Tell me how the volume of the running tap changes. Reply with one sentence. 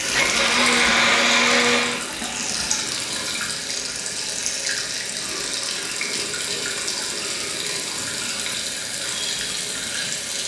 The volume of the running tap stays about the same.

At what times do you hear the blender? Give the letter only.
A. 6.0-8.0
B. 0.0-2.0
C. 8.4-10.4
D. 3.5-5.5
B.